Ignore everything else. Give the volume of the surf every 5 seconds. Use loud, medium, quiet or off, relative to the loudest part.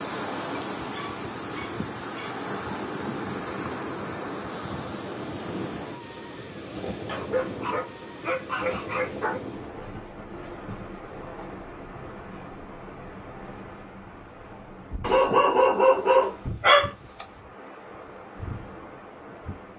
loud, loud, medium, medium.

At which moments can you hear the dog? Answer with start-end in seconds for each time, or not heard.
0.5-2.5, 7.0-9.4, 15.0-17.2.